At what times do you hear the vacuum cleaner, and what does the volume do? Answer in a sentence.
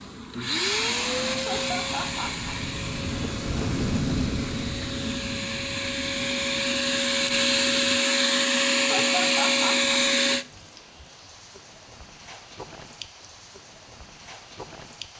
You can hear the vacuum cleaner from 0.0 to 10.4 s, getting quieter then louder.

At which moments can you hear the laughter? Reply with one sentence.
The laughter can be heard from 1.3 to 2.6 s and from 8.9 to 9.9 s.